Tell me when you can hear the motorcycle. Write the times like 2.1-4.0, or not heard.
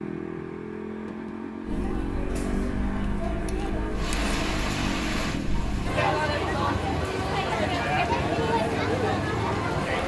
0.0-9.9.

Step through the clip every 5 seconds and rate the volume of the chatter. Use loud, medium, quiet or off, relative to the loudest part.
medium, loud.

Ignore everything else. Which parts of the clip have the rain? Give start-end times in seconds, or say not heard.
3.9-10.0.